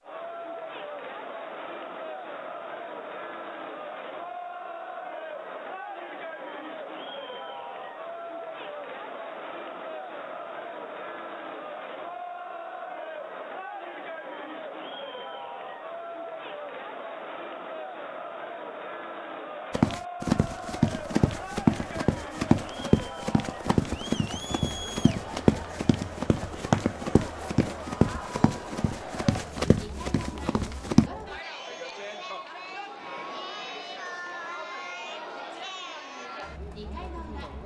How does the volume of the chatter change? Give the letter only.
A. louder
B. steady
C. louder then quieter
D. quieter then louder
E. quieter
B.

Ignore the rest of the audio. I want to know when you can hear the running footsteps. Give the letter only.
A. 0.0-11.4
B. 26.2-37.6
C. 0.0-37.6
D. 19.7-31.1
D.